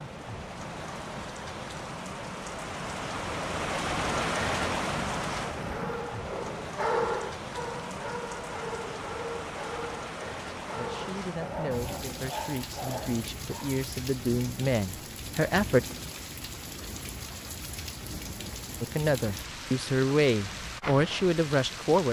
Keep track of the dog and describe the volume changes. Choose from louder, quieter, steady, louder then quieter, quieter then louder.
quieter.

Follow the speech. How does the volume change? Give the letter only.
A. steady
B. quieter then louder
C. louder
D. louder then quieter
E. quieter
C.